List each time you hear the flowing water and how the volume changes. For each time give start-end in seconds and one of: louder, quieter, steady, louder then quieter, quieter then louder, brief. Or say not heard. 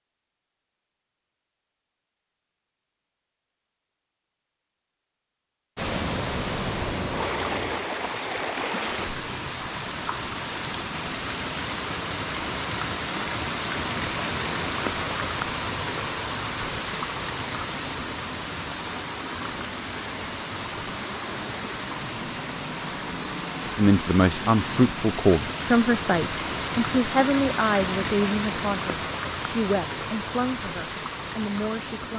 5.8-32.1 steady.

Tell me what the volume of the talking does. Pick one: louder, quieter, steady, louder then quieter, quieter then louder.
quieter.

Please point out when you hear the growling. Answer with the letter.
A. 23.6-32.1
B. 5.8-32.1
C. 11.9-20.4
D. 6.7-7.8
D.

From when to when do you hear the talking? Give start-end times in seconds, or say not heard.
23.6-32.1.